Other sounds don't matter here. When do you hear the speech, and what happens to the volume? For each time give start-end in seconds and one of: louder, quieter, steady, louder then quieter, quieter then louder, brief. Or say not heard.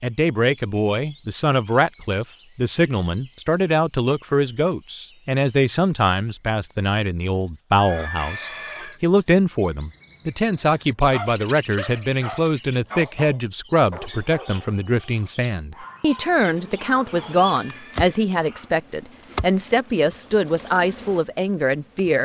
0.0-22.2 steady.